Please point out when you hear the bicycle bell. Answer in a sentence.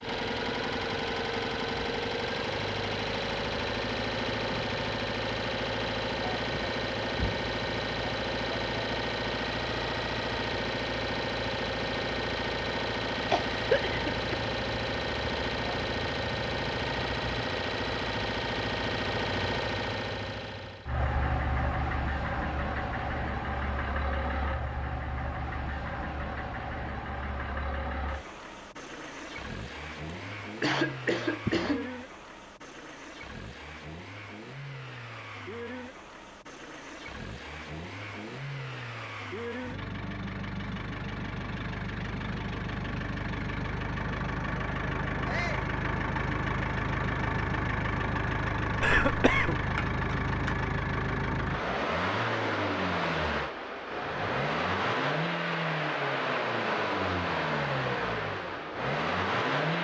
The bicycle bell can't be heard in this clip.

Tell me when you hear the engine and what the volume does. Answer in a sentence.
You can hear the engine from 0.0 to 59.7 s, getting quieter then louder.